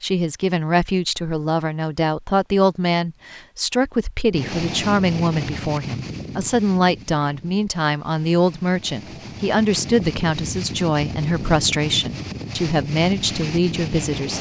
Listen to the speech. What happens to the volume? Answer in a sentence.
The loudness of the speech stays about the same.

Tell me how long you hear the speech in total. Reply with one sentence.
You can hear the speech for 14 seconds altogether.